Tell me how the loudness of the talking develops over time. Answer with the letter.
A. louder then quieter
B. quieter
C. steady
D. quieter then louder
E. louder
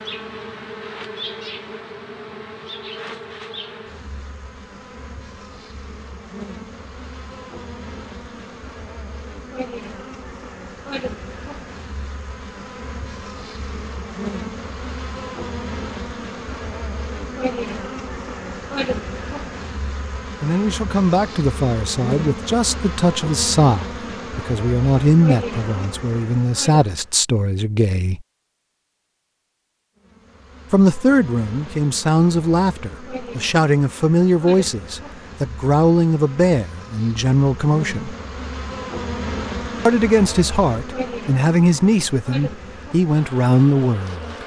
C.